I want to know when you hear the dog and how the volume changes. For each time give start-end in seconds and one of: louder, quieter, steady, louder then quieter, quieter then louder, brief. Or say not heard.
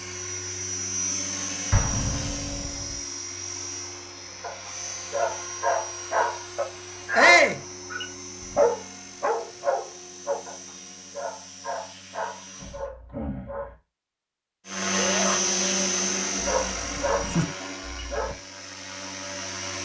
4.4-13.8 quieter
16.4-18.4 brief.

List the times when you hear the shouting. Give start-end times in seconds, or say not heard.
7.2-7.6, 15.0-15.4.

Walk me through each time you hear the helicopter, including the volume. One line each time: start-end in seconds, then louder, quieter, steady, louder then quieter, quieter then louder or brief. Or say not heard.
0.0-12.9 quieter
14.7-19.8 quieter.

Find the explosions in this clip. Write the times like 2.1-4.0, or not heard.
1.7-3.0.